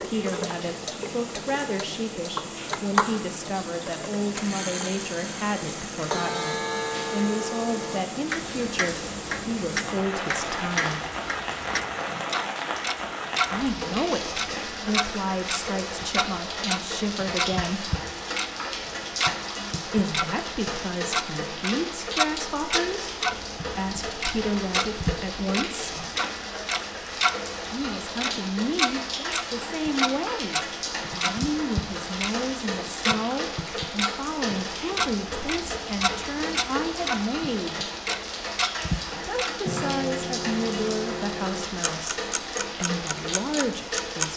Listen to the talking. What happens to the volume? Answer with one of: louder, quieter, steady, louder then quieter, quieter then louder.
steady.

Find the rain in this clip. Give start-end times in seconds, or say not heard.
0.0-44.3.